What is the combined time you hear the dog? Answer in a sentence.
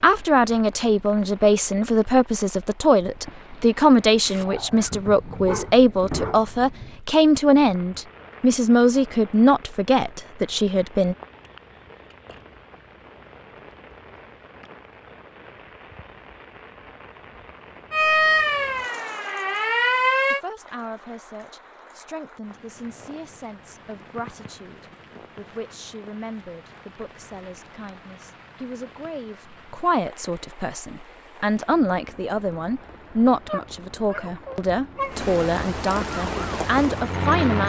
You can hear the dog for 4 seconds altogether.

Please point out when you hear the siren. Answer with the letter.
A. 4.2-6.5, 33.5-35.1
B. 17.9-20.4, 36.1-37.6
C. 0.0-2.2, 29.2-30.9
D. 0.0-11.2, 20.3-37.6
B.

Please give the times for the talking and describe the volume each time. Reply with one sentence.
You can hear the talking from 0.0 to 11.2 s, at a steady volume; and from 20.3 to 37.6 s, getting louder.